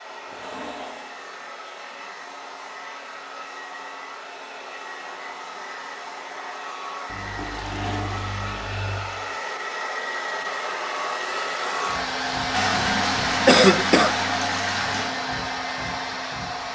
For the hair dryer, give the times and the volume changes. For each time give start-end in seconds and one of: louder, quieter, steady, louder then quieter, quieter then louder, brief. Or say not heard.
0.0-16.6 louder.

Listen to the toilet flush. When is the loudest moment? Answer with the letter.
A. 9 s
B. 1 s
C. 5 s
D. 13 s
D.